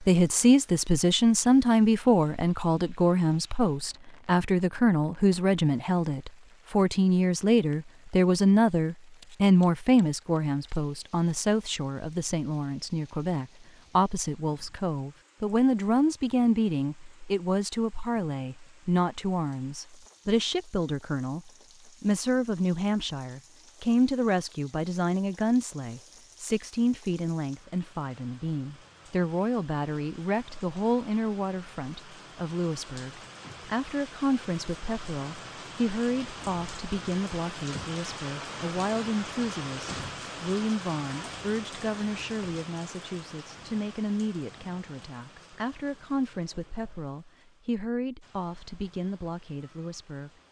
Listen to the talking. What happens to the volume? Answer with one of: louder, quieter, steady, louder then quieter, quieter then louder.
quieter.